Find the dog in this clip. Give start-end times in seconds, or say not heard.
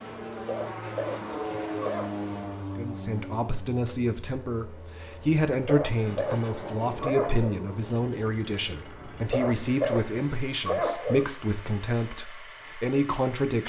0.5-2.1, 5.7-7.5, 9.3-11.3.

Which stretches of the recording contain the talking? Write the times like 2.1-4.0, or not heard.
2.8-13.6.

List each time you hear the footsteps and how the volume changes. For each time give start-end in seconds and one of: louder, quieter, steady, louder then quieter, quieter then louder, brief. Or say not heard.
not heard.